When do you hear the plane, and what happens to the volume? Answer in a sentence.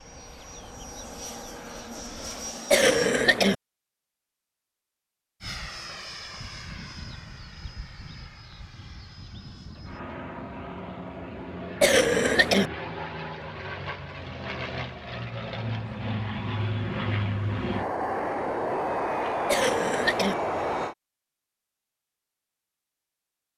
The plane can be heard briefly from 0.0 to 2.9 s; and from 5.4 to 20.9 s, getting louder.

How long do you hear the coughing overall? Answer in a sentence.
You can hear the coughing for 3 seconds altogether.